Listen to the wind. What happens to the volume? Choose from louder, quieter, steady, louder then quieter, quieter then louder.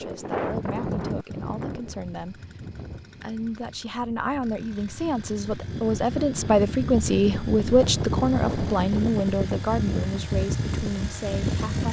quieter then louder.